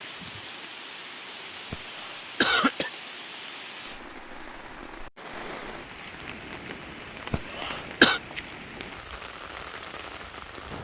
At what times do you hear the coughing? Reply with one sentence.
The coughing can be heard from 1.7 to 2.9 s and from 7.3 to 8.2 s.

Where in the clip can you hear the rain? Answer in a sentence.
The rain can be heard from 0.0 to 10.7 s.